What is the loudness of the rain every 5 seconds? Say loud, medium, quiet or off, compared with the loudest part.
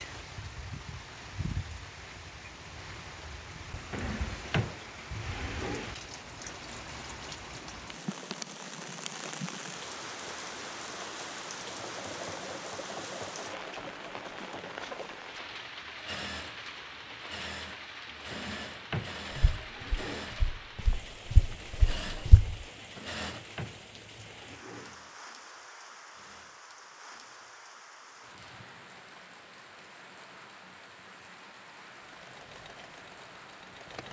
loud, loud, loud, loud, medium, medium, medium.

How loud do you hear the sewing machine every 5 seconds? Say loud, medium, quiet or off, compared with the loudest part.
off, off, loud, loud, loud, quiet, medium.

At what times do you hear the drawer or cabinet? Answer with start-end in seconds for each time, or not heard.
3.9-6.0, 18.3-20.3, 22.9-24.9.